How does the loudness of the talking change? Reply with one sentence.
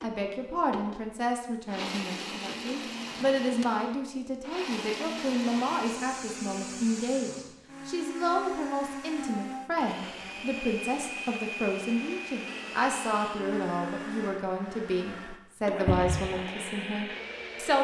The volume of the talking stays about the same.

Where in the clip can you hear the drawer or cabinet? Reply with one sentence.
The drawer or cabinet can be heard from 3.0 to 3.6 s and from 15.8 to 16.3 s.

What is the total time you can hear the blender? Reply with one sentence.
The blender can be heard for 18 seconds in total.